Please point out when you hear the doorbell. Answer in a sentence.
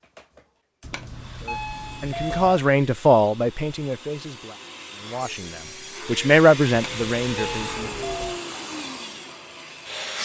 The doorbell can be heard from 0.8 to 2.6 s and from 6.7 to 8.4 s.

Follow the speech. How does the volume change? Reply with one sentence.
The volume of the speech goes down, then up.